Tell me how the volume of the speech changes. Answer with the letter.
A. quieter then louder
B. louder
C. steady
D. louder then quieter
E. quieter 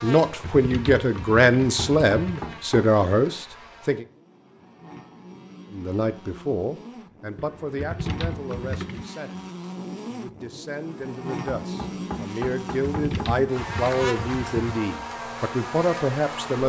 A.